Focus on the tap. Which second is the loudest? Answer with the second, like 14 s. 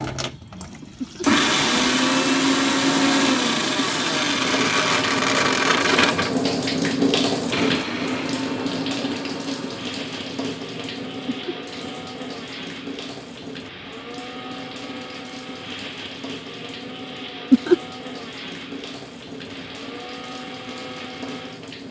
7 s.